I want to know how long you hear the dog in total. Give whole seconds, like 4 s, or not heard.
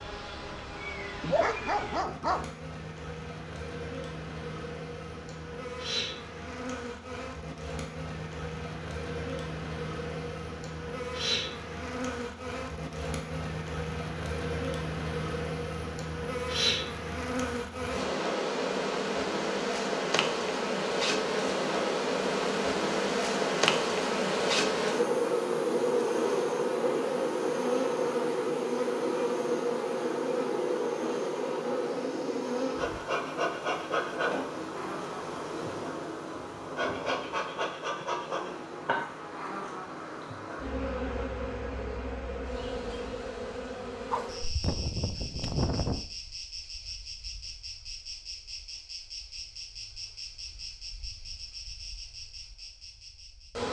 3 s.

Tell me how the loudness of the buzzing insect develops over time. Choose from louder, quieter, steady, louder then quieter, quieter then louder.
louder then quieter.